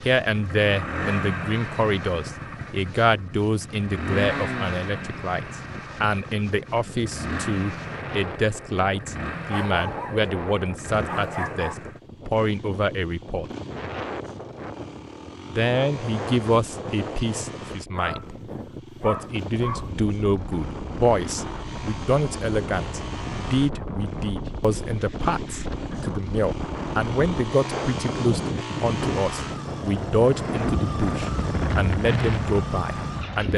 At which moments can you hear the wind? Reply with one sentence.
You can hear the wind from 0.0 to 33.5 s.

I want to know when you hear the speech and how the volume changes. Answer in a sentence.
You can hear the speech from 0.0 to 13.4 s, at a steady volume; briefly from 15.5 to 18.4 s; and from 19.0 to 33.5 s, at a steady volume.